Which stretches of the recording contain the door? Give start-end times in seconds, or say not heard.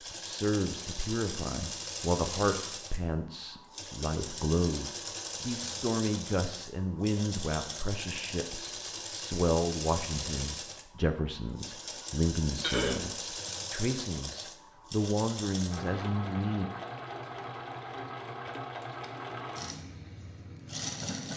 not heard.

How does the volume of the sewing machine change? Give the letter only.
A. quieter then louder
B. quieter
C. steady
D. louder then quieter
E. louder
C.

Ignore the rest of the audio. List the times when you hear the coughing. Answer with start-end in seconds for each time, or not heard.
12.6-13.4.